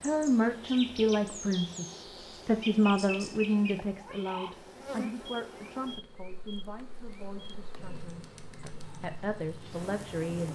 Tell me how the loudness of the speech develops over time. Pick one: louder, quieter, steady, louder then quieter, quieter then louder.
quieter then louder.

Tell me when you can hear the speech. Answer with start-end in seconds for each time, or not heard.
0.0-10.4.